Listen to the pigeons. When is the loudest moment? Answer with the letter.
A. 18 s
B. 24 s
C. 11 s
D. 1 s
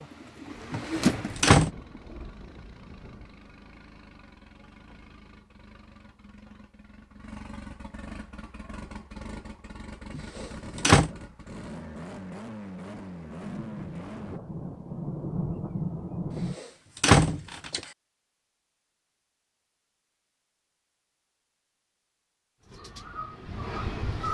D.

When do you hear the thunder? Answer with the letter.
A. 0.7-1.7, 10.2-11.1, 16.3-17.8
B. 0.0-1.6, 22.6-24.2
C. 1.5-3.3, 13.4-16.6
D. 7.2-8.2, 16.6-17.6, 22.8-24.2
C.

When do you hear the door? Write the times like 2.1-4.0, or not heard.
0.7-1.7, 10.2-11.1, 16.3-17.8.